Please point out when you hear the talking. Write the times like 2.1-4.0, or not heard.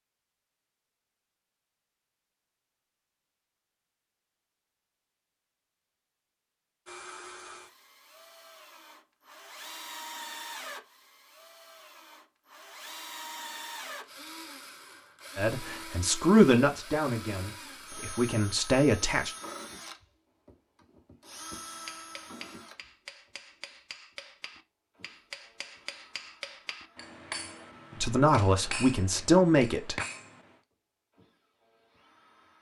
15.3-19.3, 28.0-29.9.